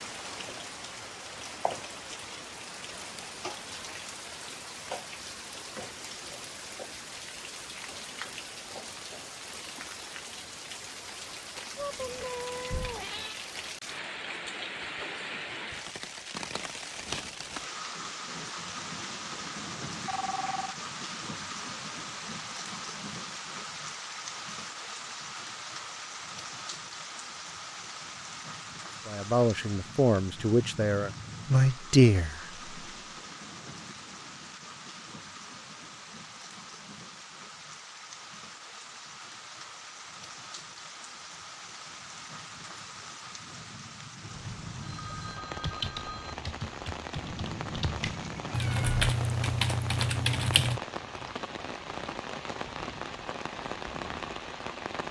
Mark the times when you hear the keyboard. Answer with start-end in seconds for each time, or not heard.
45.6-50.8.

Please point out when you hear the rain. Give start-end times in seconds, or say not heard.
0.0-55.0.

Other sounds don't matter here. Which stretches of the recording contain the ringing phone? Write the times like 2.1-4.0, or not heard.
20.1-20.8, 44.4-46.4.